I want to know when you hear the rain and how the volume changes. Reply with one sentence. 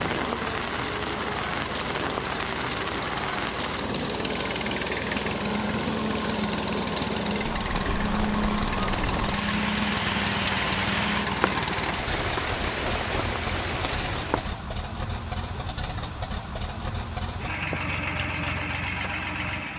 The rain can be heard from 0.0 to 14.6 s, at a steady volume.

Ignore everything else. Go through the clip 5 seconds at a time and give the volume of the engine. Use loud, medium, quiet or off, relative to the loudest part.
medium, loud, loud, loud.